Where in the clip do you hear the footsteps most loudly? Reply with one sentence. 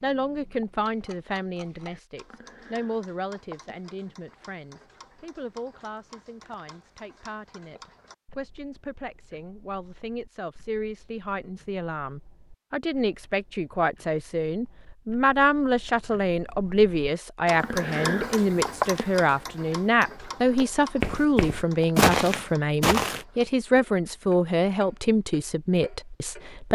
The loudest moment of the footsteps is at 22 seconds.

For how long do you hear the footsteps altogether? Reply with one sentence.
You can hear the footsteps for 3 seconds altogether.